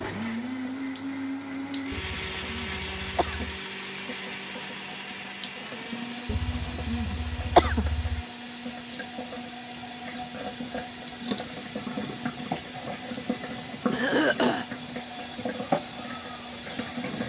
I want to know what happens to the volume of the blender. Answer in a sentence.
The volume of the blender goes down.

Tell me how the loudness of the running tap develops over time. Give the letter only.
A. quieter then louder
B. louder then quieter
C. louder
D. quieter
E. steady
C.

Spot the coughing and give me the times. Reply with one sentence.
The coughing can be heard from 1.9 to 3.5 s, from 6.2 to 8.2 s and from 13.9 to 14.7 s.